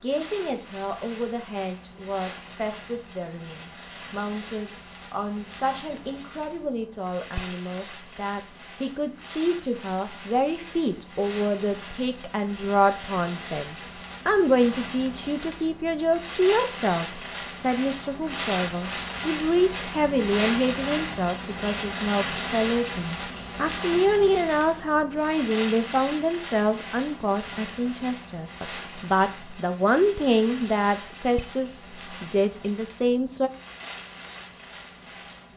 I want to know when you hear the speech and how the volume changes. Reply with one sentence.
The speech can be heard from 0.0 to 33.5 s, getting louder.